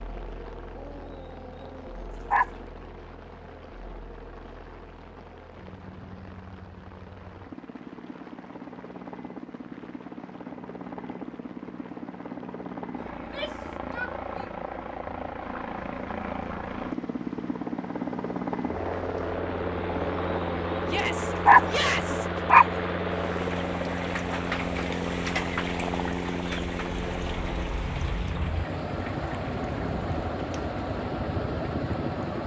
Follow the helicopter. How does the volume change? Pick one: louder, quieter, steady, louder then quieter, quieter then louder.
louder.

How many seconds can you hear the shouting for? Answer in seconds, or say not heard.
3 s.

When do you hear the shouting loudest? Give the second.
22 s.